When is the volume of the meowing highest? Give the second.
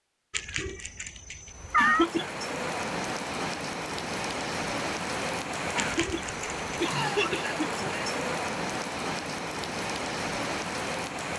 2 s.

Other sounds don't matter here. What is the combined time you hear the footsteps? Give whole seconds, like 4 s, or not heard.
not heard.